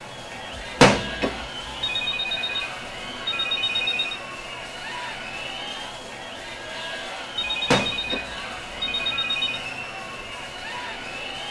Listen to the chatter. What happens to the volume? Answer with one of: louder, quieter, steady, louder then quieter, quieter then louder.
steady.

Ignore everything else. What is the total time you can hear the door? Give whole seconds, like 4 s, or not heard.
2 s.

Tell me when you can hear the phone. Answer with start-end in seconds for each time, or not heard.
1.8-4.2, 7.3-9.6.